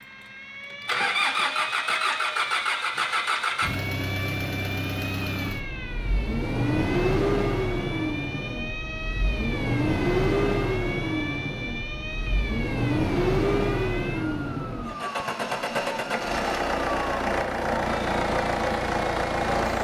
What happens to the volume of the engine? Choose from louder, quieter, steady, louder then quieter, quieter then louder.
steady.